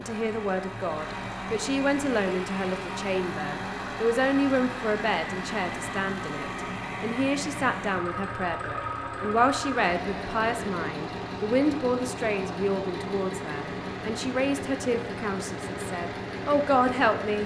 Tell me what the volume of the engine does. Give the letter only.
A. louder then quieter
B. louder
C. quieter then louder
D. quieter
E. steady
E.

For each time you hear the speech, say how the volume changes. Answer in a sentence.
You can hear the speech from 0.0 to 17.4 s, at a steady volume.